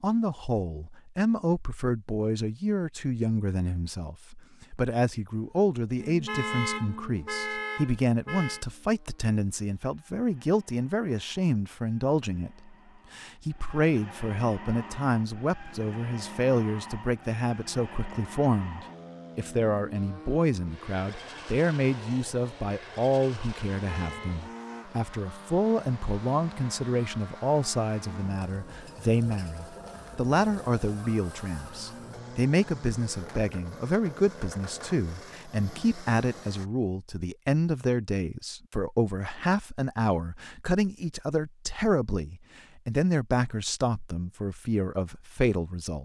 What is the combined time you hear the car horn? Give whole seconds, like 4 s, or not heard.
3 s.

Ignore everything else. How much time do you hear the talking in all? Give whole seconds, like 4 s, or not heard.
46 s.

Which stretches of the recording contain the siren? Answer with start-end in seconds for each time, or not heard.
not heard.